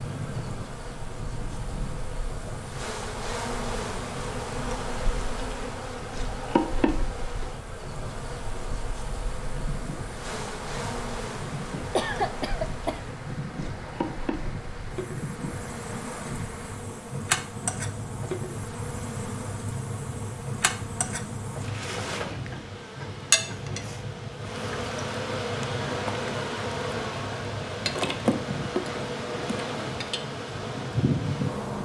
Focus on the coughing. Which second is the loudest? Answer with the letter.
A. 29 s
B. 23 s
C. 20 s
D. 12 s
D.